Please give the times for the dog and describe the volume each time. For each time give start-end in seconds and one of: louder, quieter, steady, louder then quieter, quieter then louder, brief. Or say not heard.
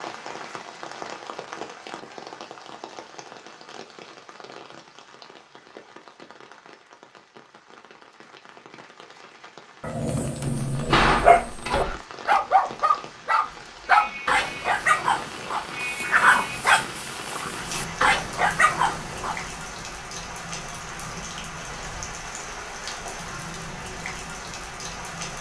9.8-19.4 steady.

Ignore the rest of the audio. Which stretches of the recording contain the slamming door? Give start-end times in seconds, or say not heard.
10.7-12.0.